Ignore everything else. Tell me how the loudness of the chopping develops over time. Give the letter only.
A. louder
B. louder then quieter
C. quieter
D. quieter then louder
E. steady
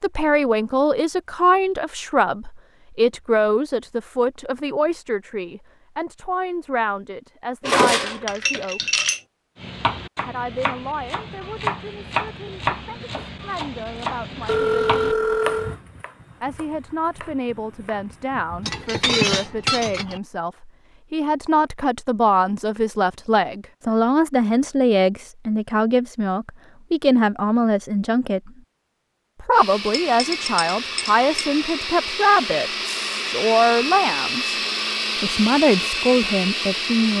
B.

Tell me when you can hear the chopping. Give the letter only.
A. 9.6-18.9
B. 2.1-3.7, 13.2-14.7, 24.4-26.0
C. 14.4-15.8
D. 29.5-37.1
A.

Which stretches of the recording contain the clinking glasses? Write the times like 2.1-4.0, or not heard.
7.6-9.2, 18.6-20.2, 29.9-31.5.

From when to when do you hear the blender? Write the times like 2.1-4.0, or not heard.
29.5-37.1.